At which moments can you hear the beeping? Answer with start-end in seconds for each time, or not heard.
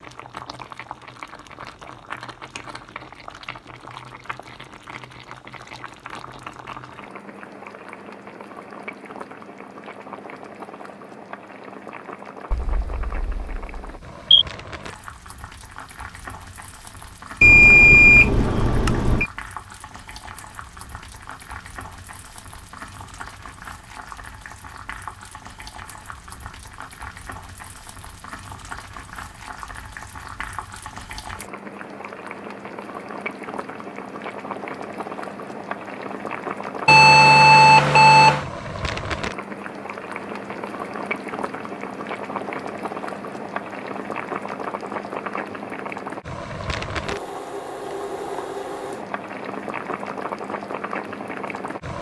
12.5-14.4, 17.4-19.3, 36.9-38.5.